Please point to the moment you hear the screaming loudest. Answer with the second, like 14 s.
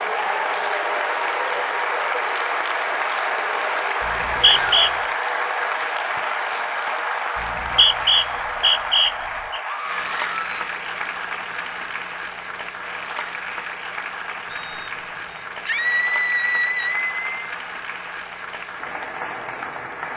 16 s.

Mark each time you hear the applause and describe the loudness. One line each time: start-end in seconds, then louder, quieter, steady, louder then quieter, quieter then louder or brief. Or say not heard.
0.0-20.1 quieter.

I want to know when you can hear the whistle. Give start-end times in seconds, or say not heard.
4.0-4.9, 7.3-9.6, 14.4-15.4.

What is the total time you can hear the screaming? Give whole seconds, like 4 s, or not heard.
3 s.